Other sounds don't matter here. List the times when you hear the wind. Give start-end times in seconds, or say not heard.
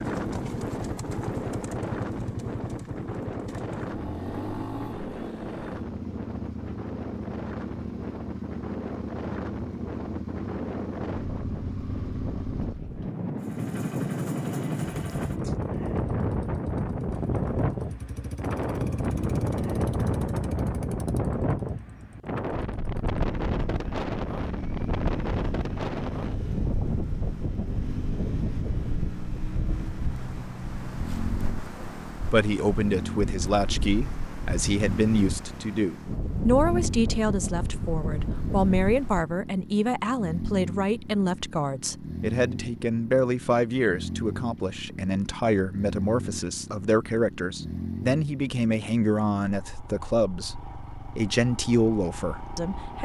0.0-39.2.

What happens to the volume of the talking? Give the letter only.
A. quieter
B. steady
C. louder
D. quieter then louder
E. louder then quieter
B.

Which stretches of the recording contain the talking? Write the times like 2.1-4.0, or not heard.
31.8-53.0.